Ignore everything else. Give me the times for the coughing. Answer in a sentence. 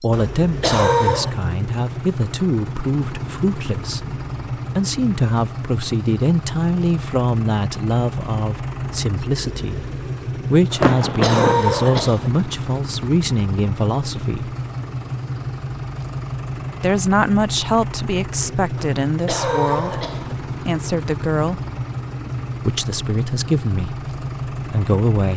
The coughing can be heard from 0.1 to 1.4 s, from 10.7 to 12.3 s and from 18.8 to 20.4 s.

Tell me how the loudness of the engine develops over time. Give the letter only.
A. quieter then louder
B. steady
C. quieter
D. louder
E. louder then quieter
B.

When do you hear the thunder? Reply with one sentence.
The thunder can be heard from 10.8 to 12.1 s.